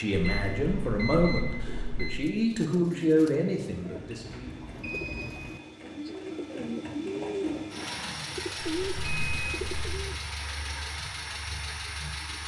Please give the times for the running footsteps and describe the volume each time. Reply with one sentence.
You can't hear the running footsteps here.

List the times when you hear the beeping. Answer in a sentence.
The beeping can be heard from 0.1 to 2.2 s, from 4.3 to 5.4 s and from 8.6 to 9.9 s.